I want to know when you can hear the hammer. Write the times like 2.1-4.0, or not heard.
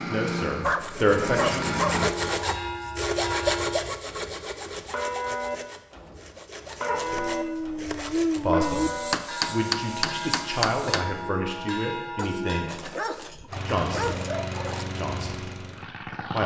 8.6-11.1.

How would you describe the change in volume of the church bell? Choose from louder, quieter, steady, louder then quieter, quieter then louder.
steady.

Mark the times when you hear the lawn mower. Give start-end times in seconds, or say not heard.
0.0-2.1, 13.4-16.4.